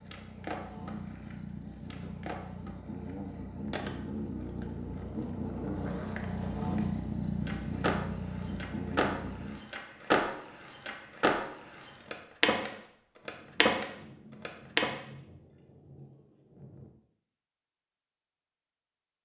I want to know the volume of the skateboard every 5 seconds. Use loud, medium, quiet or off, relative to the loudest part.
quiet, medium, loud, off.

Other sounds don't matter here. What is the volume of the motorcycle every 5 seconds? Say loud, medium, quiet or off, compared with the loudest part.
medium, loud, off, off.